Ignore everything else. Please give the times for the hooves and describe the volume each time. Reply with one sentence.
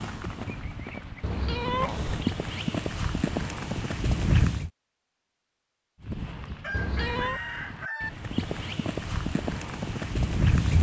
You can hear the hooves from 0.0 to 4.7 s, getting louder; and from 6.0 to 10.7 s, getting louder.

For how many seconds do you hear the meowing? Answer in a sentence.
You can hear the meowing for 2 seconds altogether.